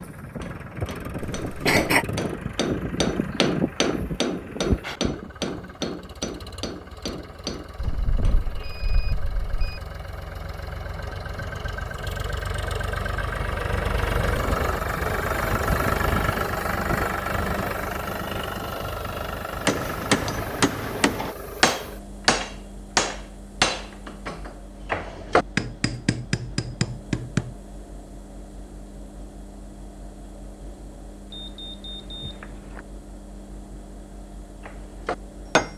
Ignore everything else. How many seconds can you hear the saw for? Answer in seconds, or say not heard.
not heard.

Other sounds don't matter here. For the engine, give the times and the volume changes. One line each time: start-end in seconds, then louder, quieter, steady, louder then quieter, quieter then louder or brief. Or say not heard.
0.0-35.7 louder then quieter.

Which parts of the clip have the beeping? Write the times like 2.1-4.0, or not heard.
7.8-9.8, 31.3-32.9.